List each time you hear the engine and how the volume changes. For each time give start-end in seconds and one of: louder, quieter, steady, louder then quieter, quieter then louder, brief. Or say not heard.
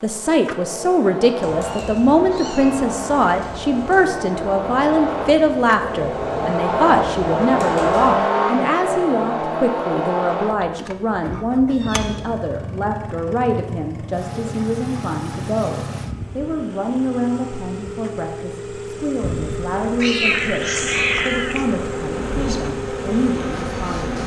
0.0-24.2 louder then quieter.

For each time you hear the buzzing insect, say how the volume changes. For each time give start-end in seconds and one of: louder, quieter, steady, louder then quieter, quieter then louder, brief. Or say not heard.
19.2-24.2 louder.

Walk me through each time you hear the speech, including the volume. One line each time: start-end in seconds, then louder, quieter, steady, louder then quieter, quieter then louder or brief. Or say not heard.
0.0-24.1 quieter.